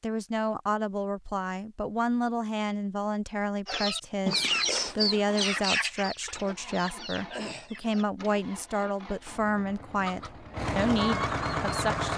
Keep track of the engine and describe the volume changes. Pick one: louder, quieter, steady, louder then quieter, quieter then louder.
louder.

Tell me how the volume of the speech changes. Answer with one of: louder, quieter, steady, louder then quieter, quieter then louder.
steady.